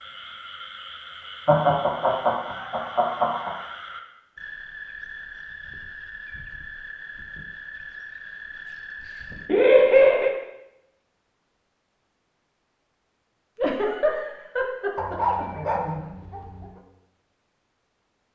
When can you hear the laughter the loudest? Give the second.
10 s.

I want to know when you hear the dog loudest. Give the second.
15 s.